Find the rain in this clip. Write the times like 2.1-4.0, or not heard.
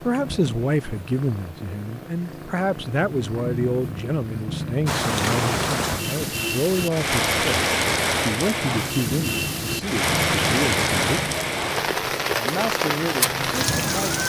4.8-14.2.